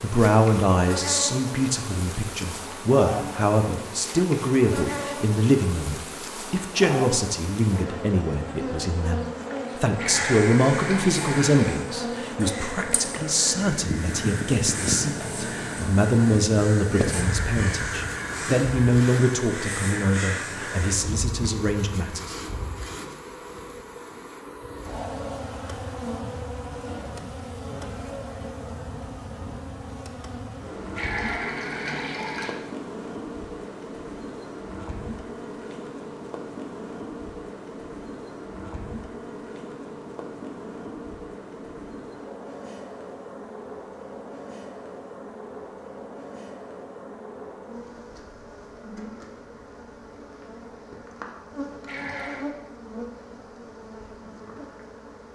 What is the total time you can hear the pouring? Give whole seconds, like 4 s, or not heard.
4 s.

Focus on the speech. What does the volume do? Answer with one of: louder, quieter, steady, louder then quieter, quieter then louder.
steady.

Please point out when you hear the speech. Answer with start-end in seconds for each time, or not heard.
0.0-22.4.